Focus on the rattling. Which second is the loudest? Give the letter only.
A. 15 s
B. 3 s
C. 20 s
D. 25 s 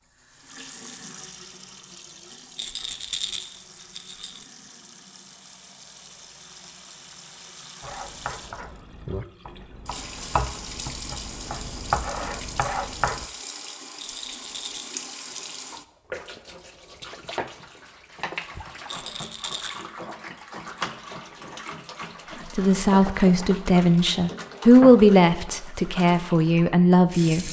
B.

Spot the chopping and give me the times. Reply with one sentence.
The chopping can be heard from 7.8 to 13.2 s.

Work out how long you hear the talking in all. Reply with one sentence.
The talking can be heard for 5 seconds in total.